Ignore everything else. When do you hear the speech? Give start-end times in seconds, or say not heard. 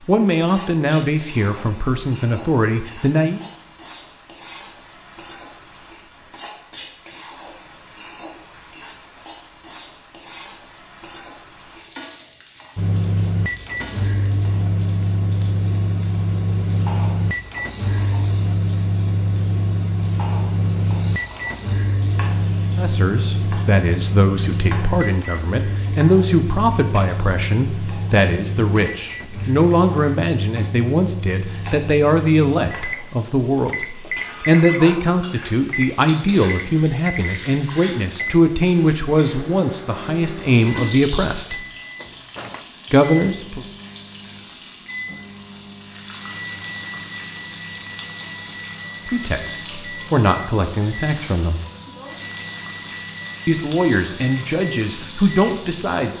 0.1-3.4, 22.8-41.5, 42.9-43.6, 49.0-51.6, 53.5-56.1.